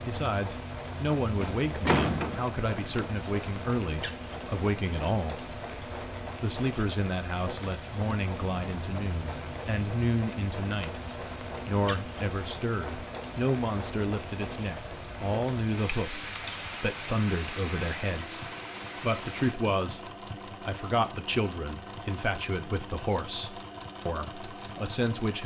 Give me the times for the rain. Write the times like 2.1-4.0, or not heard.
0.0-19.6.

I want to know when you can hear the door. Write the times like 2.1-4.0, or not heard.
1.4-2.4.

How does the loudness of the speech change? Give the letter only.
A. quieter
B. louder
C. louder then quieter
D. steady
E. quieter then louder
D.